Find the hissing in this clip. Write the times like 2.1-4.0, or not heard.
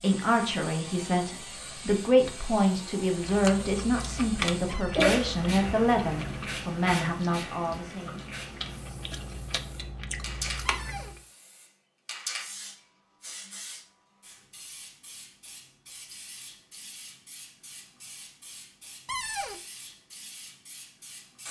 0.0-21.4.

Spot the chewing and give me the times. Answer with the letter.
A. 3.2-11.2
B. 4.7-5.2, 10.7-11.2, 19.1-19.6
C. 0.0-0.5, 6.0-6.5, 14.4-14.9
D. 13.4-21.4
A.